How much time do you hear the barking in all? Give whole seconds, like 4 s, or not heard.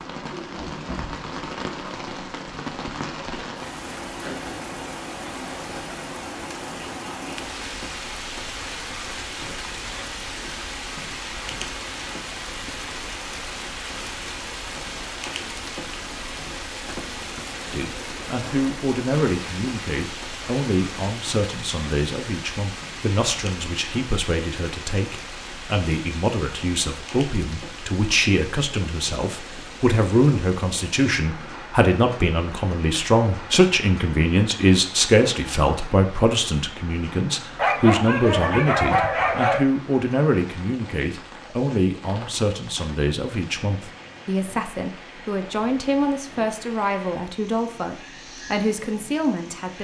2 s.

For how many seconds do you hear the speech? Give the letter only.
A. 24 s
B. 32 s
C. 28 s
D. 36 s
B.